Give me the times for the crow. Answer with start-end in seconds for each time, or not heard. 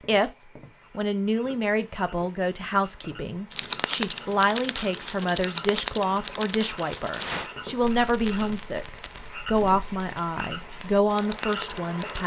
not heard.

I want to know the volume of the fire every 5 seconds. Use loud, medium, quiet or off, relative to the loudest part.
loud, medium, medium.